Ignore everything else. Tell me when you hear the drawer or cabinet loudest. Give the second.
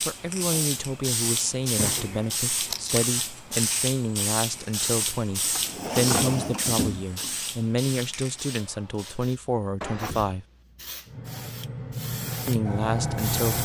6 s.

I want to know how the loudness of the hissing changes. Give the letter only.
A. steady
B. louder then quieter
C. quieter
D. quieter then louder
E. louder
D.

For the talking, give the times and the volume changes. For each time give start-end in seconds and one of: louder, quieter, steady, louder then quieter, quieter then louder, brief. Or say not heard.
0.0-10.4 steady
12.4-13.6 brief.